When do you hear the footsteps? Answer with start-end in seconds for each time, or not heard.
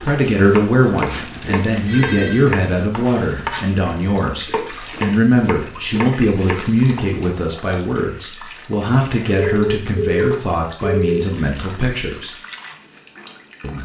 not heard.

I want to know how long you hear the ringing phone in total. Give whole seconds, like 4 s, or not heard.
3 s.